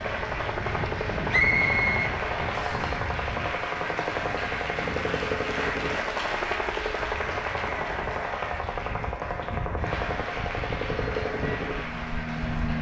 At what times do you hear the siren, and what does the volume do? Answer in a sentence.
You can't hear the siren here.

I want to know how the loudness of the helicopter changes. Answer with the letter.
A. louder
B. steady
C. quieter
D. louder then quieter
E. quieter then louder
B.